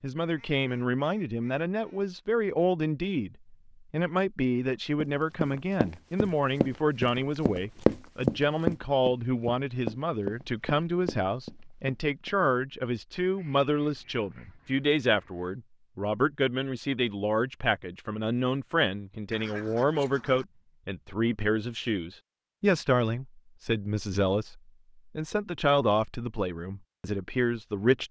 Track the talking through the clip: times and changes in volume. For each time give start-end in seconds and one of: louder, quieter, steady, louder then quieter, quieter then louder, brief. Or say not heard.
0.0-28.0 steady.